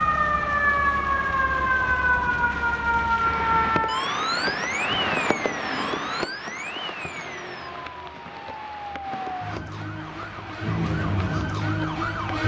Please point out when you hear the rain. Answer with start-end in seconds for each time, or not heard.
0.0-12.3.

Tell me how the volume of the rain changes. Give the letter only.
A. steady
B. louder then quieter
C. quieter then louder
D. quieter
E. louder
B.